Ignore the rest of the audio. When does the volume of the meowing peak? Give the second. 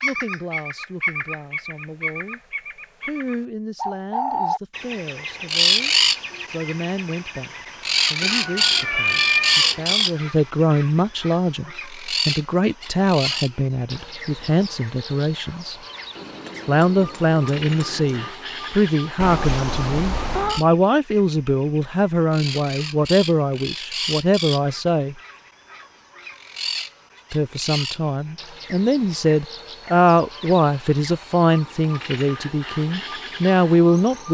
9 s.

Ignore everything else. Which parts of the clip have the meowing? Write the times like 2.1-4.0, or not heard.
8.2-10.1, 19.1-20.6.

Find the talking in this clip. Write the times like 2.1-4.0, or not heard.
0.0-2.4, 3.0-15.8, 16.6-25.1, 27.3-34.2.